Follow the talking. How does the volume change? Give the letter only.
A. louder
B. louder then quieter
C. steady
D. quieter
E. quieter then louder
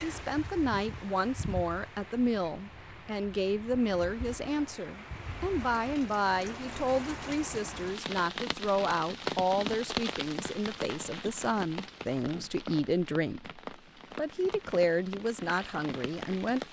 C.